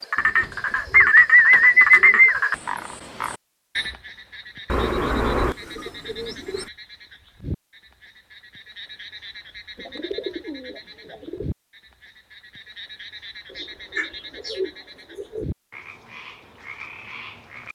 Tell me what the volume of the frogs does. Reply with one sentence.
The loudness of the frogs goes down.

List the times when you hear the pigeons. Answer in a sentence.
You can hear the pigeons from 0.4 to 2.4 s, from 4.7 to 6.7 s, from 9.8 to 11.5 s and from 13.5 to 15.4 s.